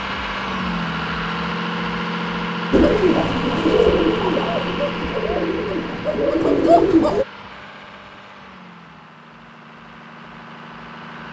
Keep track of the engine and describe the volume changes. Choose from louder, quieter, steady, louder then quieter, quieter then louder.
quieter.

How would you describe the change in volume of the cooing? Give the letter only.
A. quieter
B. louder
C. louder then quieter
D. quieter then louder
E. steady
D.